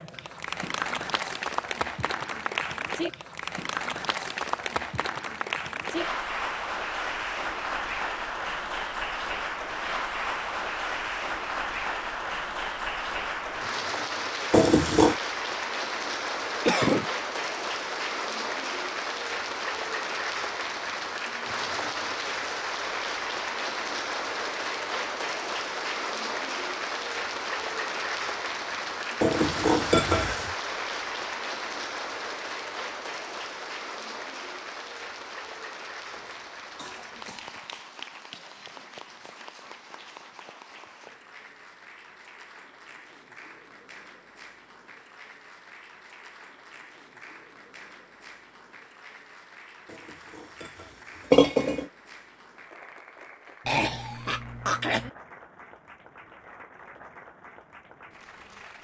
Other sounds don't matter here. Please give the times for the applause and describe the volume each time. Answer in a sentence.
The applause can be heard from 0.0 to 58.7 s, getting quieter.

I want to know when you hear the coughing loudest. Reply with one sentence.
The volume of the coughing peaks at 17 seconds.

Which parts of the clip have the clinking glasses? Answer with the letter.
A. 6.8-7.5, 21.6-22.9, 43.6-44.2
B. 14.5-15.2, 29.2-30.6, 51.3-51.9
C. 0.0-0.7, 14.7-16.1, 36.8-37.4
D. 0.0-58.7
B.